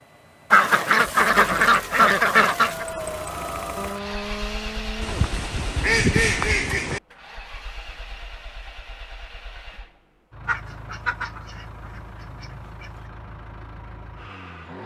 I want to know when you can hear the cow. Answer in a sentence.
You can hear the cow from 3.8 to 5.3 s.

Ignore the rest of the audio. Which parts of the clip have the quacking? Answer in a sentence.
The quacking can be heard from 0.5 to 2.9 s, from 5.0 to 7.0 s and from 10.4 to 12.9 s.